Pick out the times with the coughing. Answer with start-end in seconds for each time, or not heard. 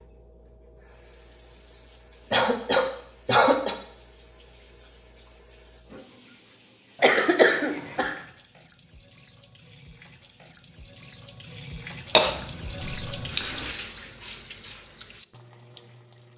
2.3-3.8, 7.0-8.2, 12.2-13.7.